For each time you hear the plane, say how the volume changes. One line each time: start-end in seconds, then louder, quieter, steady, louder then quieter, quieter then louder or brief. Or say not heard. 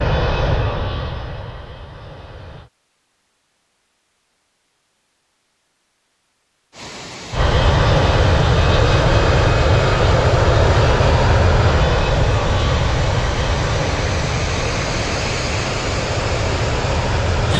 0.0-2.7 brief
7.3-17.5 quieter.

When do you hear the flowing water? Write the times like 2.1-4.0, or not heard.
6.7-17.5.